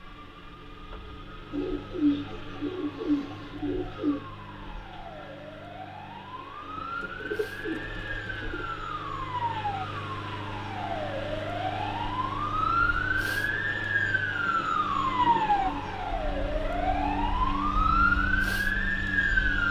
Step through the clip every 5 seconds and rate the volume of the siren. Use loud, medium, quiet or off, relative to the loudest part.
quiet, medium, loud, loud.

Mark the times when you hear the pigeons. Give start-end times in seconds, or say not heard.
1.5-4.2, 6.8-8.7, 14.4-15.9.